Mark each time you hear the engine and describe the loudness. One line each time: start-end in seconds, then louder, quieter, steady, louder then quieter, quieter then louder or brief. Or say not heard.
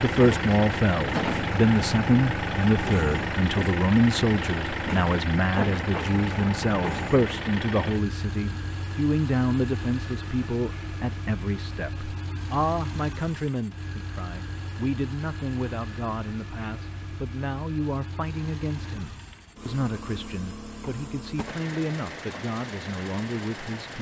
0.0-23.9 quieter.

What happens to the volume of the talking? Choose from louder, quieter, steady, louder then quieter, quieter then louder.
quieter.